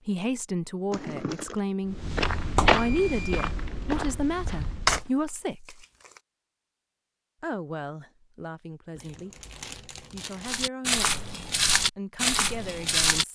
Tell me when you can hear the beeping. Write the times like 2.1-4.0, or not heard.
2.5-3.5.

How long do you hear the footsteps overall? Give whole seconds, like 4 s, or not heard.
6 s.